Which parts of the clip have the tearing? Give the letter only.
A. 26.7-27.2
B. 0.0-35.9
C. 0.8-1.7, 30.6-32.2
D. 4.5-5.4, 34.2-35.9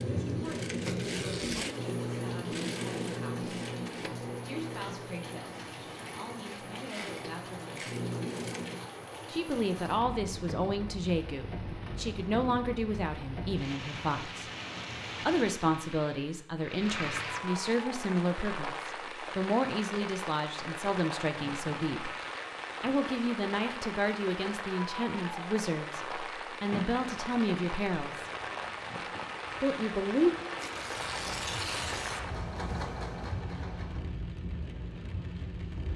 C.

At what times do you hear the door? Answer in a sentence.
The door can be heard from 26.7 to 27.2 s.